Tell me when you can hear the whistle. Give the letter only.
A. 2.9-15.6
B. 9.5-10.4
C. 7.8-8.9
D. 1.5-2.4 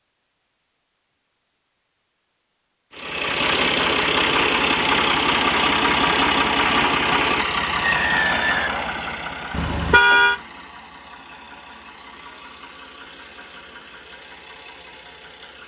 C.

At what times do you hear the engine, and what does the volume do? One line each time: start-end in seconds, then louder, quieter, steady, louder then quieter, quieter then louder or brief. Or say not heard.
2.9-15.6 quieter.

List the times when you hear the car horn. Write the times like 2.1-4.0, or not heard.
9.5-10.4.